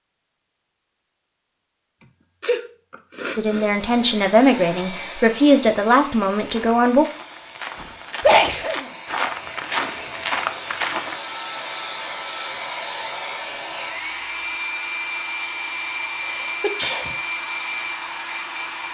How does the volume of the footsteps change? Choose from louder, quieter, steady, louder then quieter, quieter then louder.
louder.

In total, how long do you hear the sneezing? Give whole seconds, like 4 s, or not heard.
3 s.